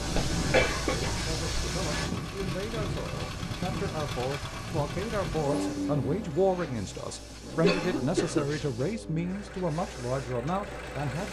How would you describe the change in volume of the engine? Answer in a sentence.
The volume of the engine goes down.